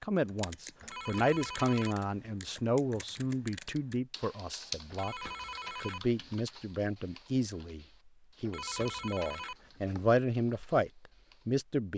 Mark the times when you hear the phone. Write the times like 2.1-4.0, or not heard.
0.8-2.3, 4.9-6.4, 8.4-10.1.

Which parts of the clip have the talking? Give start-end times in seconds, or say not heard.
0.0-11.9.